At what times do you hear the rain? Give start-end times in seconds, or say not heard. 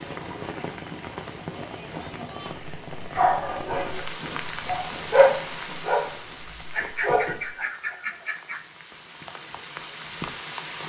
0.0-10.8.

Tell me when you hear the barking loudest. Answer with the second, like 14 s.
5 s.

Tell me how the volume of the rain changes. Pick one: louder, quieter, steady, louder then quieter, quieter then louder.
quieter then louder.